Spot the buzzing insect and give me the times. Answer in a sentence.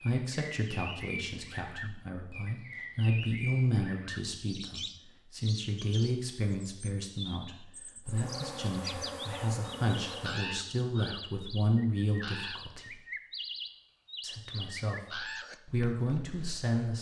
You can hear the buzzing insect from 8.1 to 10.4 s.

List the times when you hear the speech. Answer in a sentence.
You can hear the speech from 0.0 to 13.0 s and from 14.2 to 16.9 s.